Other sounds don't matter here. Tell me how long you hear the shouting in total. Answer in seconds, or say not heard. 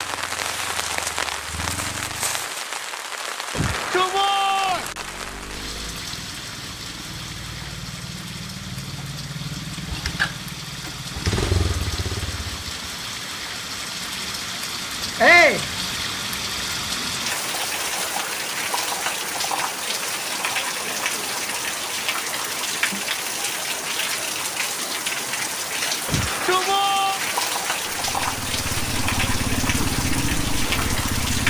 3 s.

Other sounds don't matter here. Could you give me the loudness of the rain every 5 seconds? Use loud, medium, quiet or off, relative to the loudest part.
loud, medium, medium, loud, loud, loud, loud.